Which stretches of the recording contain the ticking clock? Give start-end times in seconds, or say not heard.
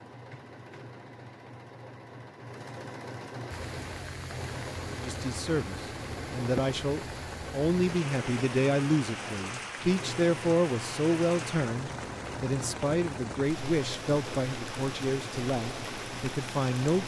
not heard.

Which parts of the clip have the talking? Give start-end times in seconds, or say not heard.
5.0-17.0.